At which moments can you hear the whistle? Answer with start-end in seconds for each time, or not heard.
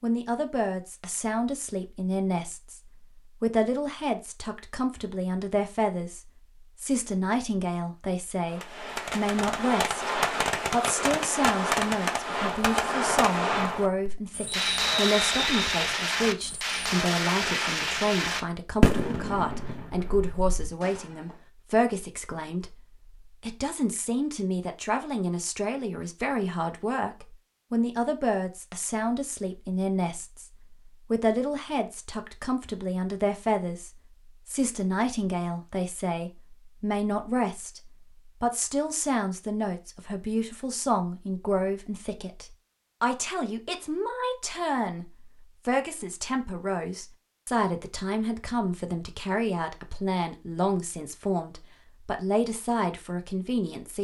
14.4-15.8.